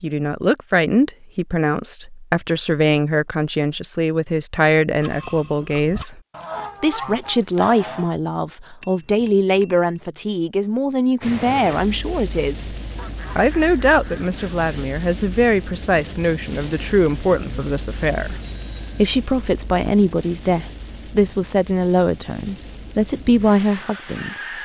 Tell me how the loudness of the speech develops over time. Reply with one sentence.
The volume of the speech stays about the same.